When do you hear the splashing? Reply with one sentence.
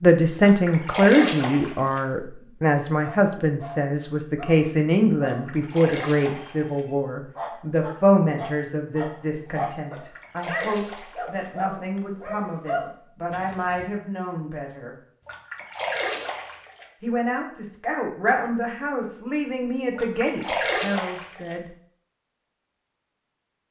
You can hear the splashing from 0.5 to 2.0 s, from 5.2 to 6.8 s, from 9.8 to 11.5 s, from 15.2 to 16.9 s and from 19.9 to 21.6 s.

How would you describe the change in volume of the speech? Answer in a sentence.
The volume of the speech goes down.